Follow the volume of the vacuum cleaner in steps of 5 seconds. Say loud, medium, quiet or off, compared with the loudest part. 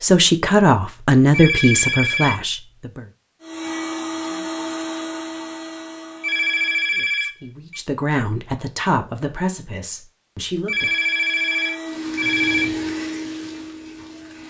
loud, medium, loud.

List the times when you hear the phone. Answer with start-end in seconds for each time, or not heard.
1.3-2.4, 6.2-7.8, 10.7-12.7.